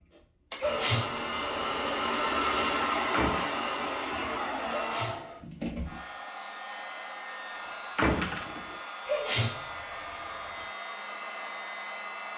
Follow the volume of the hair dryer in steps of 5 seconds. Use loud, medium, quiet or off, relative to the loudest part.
loud, medium, medium.